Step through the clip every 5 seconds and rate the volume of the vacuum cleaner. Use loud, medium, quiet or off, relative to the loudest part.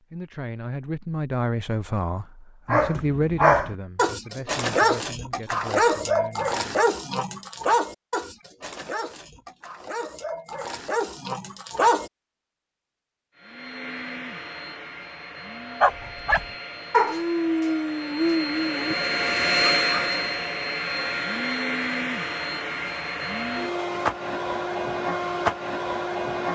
off, off, medium, loud, loud, loud.